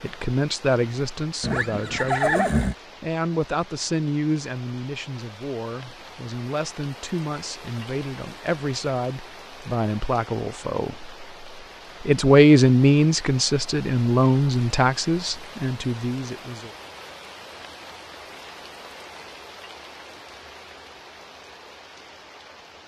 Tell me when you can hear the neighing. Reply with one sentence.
You can hear the neighing from 1.4 to 2.8 s.